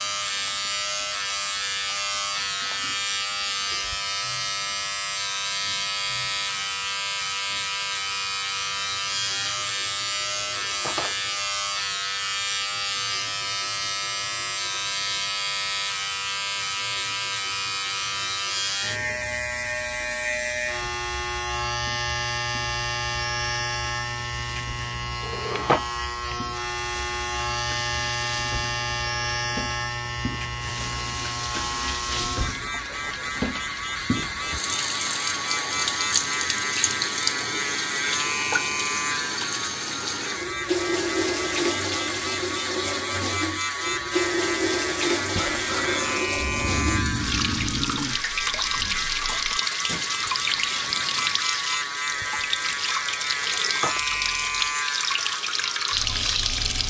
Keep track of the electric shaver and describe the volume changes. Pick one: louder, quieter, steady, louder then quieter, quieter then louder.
steady.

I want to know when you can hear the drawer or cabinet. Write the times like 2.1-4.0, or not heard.
10.6-11.2, 25.2-25.9, 53.4-54.0.